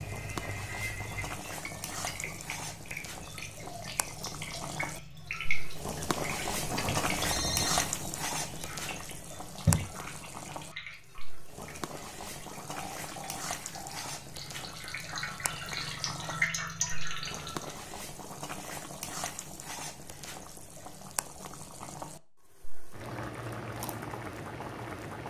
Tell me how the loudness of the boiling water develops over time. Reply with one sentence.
The loudness of the boiling water goes up, then down.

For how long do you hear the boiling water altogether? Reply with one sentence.
You can hear the boiling water for 25 seconds altogether.